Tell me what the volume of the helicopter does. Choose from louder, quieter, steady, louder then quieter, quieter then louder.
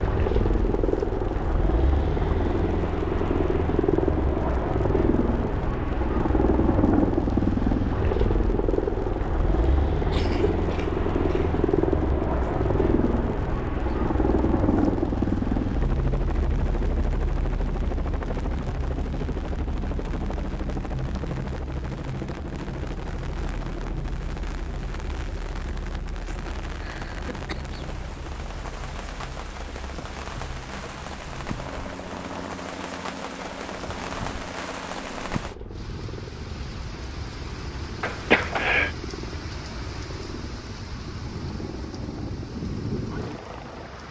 quieter.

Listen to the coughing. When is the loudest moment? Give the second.
38 s.